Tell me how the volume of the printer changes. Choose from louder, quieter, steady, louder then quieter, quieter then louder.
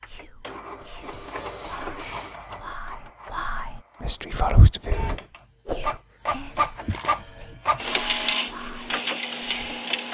quieter then louder.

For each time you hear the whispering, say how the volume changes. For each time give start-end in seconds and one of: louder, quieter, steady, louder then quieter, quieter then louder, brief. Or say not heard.
0.1-9.8 louder then quieter.